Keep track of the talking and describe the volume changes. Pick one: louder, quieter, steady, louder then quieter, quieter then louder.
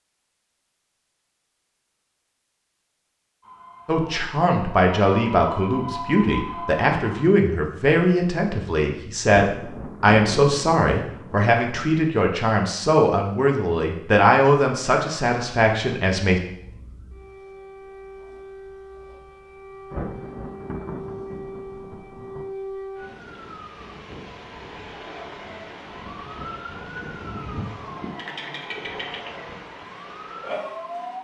steady.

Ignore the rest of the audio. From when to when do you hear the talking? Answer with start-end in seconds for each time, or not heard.
3.9-16.4.